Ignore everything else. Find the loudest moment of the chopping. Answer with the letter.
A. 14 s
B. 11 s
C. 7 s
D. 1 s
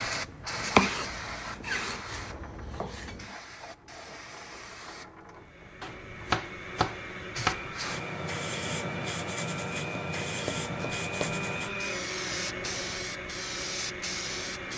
D.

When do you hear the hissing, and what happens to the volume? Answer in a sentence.
You can hear the hissing from 0.0 to 14.7 s, getting quieter then louder.